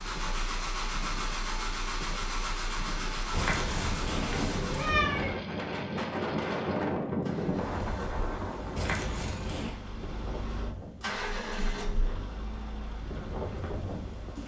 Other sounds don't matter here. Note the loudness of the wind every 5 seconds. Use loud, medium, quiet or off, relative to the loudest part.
medium, loud, medium.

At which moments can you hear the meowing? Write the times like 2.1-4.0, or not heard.
3.3-5.3, 8.8-9.8.